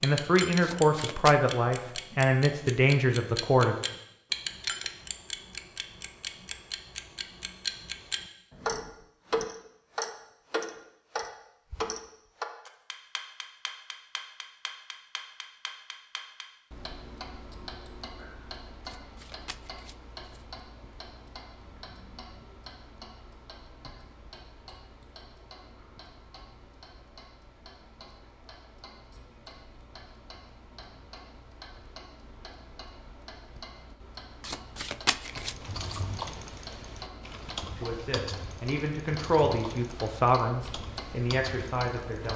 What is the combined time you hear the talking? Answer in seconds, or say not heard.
8 s.